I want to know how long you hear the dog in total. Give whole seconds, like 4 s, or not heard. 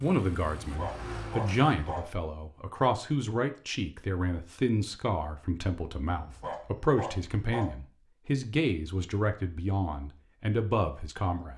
3 s.